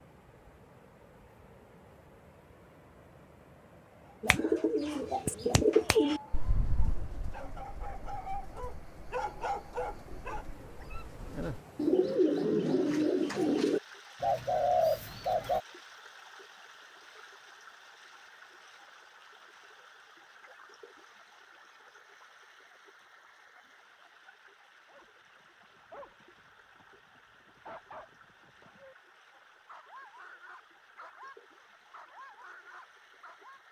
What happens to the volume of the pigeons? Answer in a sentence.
The volume of the pigeons goes down, then up.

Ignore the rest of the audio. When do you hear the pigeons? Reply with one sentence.
The pigeons can be heard from 4.2 to 15.6 s.